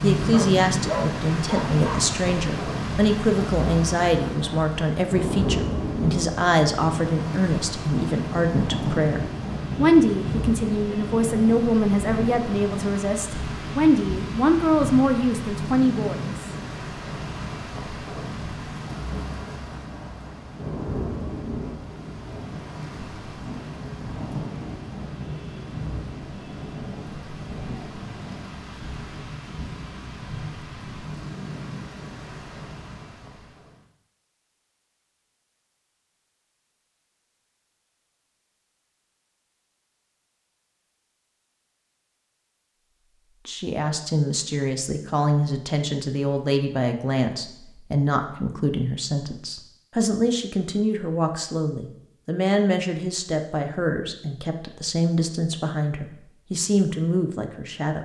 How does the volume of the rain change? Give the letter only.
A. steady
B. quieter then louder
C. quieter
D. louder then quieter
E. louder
C.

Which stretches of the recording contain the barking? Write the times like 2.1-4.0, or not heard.
0.3-2.0.